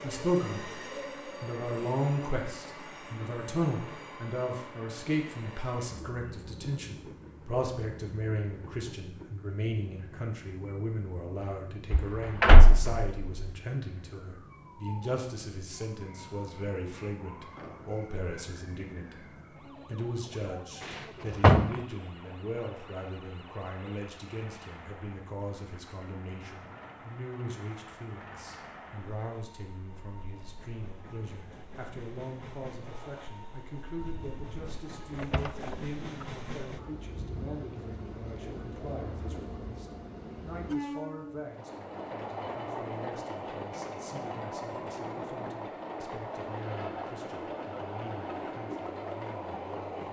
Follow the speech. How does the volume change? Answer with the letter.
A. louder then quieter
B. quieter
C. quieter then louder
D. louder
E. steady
B.